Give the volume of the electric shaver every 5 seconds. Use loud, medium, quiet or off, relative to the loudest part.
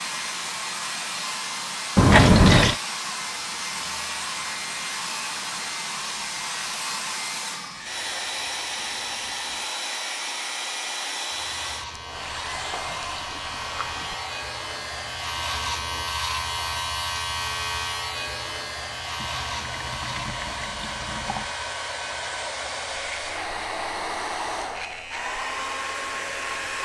medium, medium, medium, loud, medium, medium.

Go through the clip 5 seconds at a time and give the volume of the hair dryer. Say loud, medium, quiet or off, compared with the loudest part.
loud, loud, loud, medium, loud, loud.